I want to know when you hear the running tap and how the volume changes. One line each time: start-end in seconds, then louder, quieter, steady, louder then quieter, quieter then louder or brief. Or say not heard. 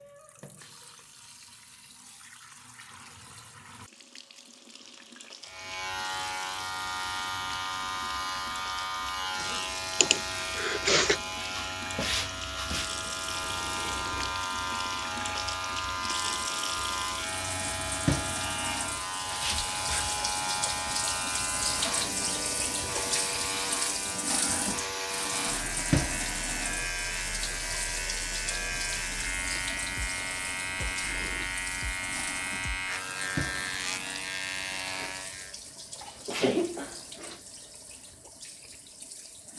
0.0-39.5 louder then quieter.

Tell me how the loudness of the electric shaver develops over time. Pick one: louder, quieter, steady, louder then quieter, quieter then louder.
steady.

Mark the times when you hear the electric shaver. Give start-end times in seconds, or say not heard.
5.4-35.5.